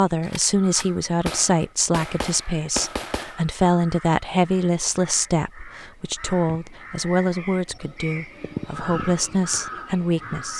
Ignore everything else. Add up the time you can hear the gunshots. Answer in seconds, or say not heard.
3 s.